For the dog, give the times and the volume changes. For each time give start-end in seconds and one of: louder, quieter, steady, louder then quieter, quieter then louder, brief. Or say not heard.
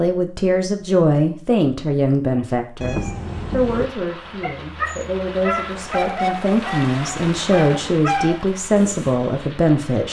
4.4-9.3 quieter then louder.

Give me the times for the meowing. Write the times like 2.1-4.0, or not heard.
2.8-3.9.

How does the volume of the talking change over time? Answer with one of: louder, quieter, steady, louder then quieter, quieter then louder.
quieter then louder.